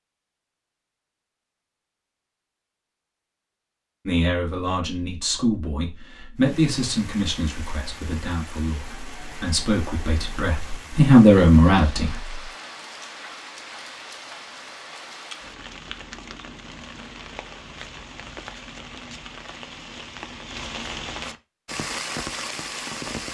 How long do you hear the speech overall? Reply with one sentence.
The speech can be heard for 8 seconds in total.